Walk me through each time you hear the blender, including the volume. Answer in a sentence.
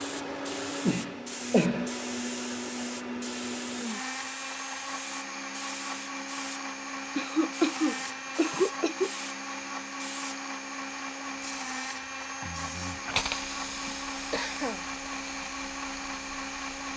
You can hear the blender from 0.0 to 16.9 s, at a steady volume.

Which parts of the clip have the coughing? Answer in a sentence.
You can hear the coughing from 0.8 to 1.9 s, from 7.2 to 9.1 s and from 13.8 to 14.8 s.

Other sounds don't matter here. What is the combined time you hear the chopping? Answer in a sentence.
You can't hear the chopping here.